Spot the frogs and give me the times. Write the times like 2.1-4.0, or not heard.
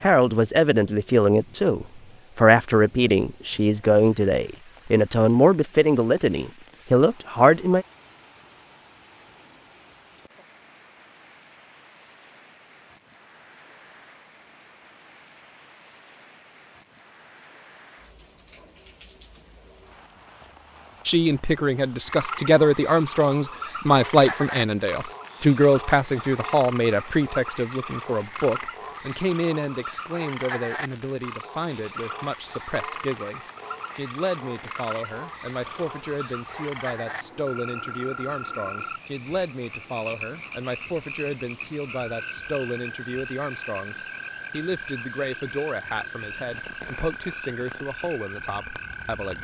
21.9-49.3.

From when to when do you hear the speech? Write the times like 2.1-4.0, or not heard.
0.0-7.8, 21.1-49.3.